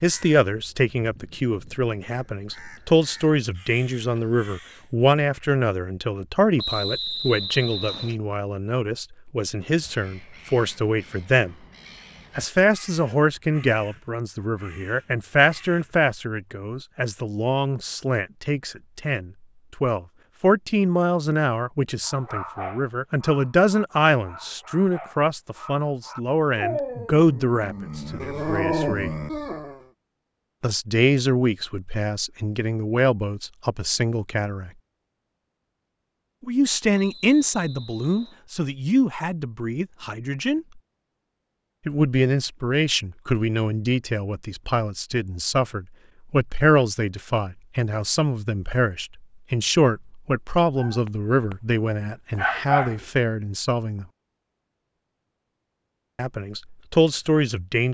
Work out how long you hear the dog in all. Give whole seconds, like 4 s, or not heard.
9 s.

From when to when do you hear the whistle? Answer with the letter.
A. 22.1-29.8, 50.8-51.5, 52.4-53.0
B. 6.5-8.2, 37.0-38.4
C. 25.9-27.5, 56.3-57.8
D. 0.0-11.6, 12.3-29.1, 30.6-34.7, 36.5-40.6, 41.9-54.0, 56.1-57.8
B.